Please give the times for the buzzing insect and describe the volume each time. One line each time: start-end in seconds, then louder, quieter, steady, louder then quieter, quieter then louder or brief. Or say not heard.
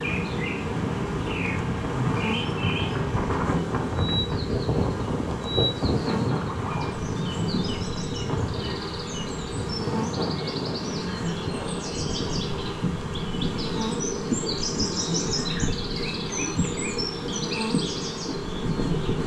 0.0-19.2 steady.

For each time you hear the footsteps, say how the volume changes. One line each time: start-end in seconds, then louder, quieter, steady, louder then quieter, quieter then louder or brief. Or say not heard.
not heard.